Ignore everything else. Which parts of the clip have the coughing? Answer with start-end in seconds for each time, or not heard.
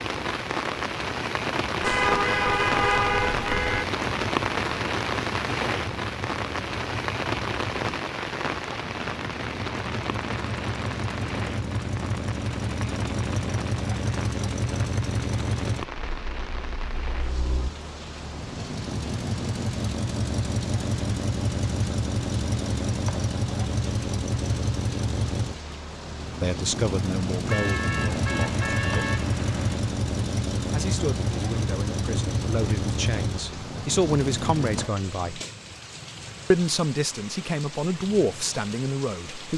not heard.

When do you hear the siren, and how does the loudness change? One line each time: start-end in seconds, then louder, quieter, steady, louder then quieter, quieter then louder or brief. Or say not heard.
not heard.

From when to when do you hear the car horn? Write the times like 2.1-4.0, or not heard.
1.8-3.9, 27.4-29.8.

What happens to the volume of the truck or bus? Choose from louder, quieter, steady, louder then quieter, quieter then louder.
louder.